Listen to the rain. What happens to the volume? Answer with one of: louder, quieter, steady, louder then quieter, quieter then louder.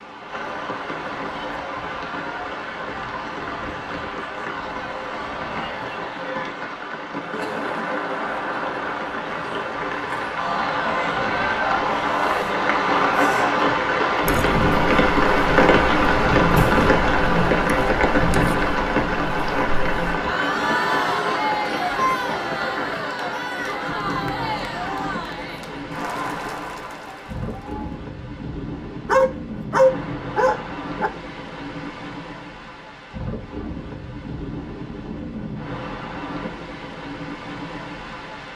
louder then quieter.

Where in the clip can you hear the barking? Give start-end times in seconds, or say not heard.
29.1-31.1.